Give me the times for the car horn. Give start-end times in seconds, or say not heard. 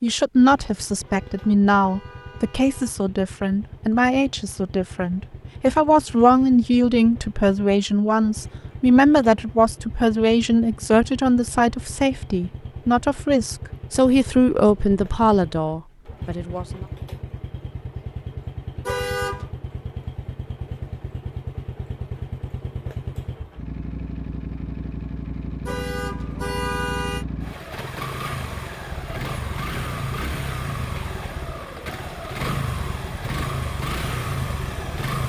1.1-2.9, 18.9-19.5, 25.6-27.2.